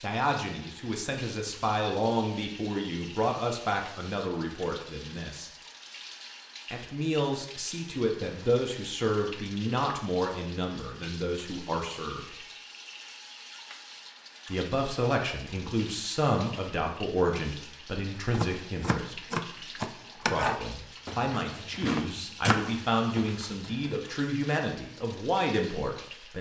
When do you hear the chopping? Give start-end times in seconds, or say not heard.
18.3-23.9.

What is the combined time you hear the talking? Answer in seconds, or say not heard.
22 s.